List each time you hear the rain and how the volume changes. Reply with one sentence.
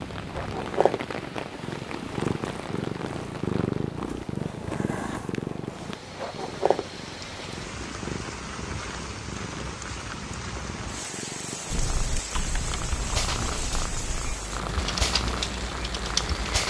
You can hear the rain from 0.0 to 16.6 s, getting quieter then louder.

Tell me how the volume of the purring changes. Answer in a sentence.
The volume of the purring goes down, then up.